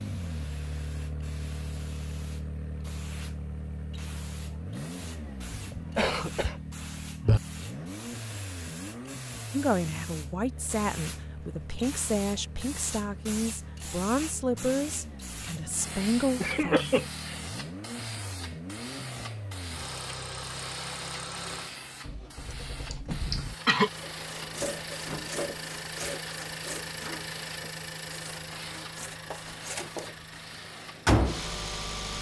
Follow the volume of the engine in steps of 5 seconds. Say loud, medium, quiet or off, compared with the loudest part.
medium, medium, quiet, medium, medium, medium, loud.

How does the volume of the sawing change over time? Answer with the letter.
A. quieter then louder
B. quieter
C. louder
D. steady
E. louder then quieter
A.